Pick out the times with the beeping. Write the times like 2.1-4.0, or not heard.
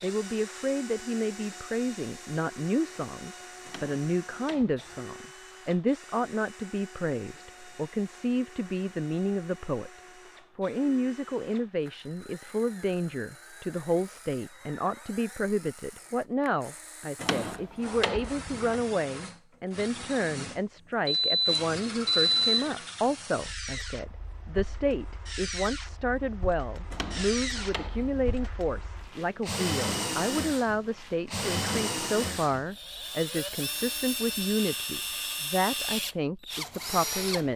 21.1-22.6.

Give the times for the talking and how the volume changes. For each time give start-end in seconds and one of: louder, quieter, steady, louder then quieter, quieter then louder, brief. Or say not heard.
0.0-9.9 steady
10.6-37.5 steady.